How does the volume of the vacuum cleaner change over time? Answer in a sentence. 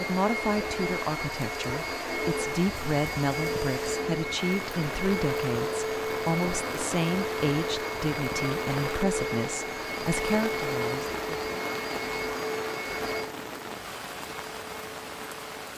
The volume of the vacuum cleaner stays about the same.